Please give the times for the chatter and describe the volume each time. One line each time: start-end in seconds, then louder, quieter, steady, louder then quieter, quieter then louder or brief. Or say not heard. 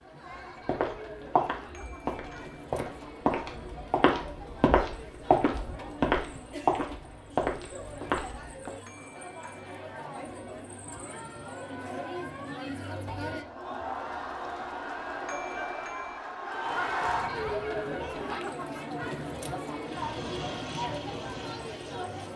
0.0-22.3 louder.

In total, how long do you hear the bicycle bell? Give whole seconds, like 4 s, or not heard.
3 s.